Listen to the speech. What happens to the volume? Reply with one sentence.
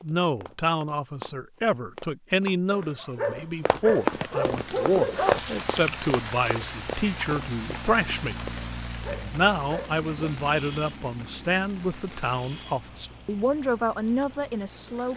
The volume of the speech stays about the same.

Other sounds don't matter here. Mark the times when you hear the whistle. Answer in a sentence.
The whistle can't be heard in this clip.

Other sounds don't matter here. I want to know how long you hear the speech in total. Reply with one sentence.
You can hear the speech for 14 seconds altogether.